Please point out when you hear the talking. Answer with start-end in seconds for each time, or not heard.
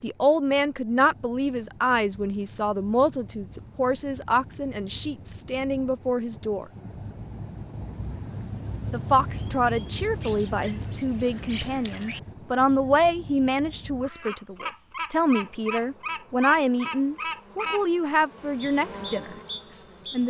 0.0-6.7, 8.9-20.2.